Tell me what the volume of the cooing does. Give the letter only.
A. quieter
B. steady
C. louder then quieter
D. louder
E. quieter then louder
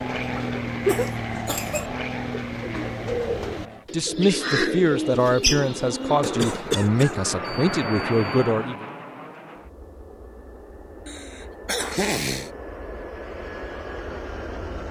C.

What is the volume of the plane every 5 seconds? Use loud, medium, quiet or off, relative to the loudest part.
loud, loud, medium.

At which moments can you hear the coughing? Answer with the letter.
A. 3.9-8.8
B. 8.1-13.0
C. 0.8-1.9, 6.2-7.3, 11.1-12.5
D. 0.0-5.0
C.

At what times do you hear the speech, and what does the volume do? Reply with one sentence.
You can hear the speech from 3.9 to 8.8 s, at a steady volume.